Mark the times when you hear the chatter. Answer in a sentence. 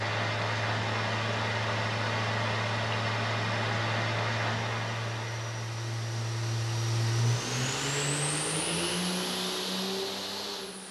You can't hear the chatter here.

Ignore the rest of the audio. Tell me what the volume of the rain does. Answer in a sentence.
The loudness of the rain goes down.